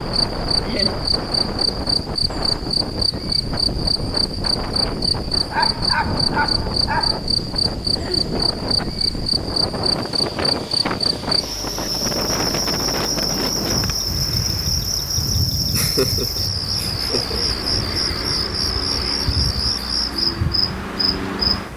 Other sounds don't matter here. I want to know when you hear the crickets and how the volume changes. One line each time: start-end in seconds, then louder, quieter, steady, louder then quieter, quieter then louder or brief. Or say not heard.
0.0-21.6 steady.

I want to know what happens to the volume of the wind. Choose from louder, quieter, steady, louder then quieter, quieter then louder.
steady.